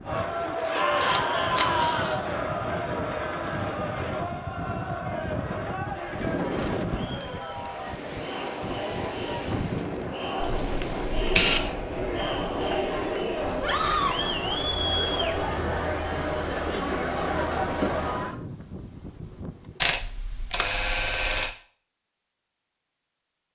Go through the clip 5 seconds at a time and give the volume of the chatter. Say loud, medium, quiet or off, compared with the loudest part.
loud, medium, loud, loud, off.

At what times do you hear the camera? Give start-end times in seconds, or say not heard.
0.6-1.9, 10.4-11.8, 19.8-21.6.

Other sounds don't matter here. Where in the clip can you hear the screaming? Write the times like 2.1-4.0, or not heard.
0.8-2.2, 13.6-14.3.